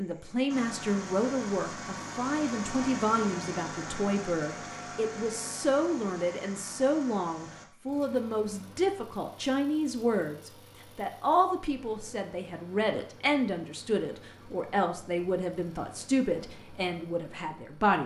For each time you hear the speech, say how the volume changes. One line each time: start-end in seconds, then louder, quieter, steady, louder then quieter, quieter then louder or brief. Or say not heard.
0.0-18.0 steady.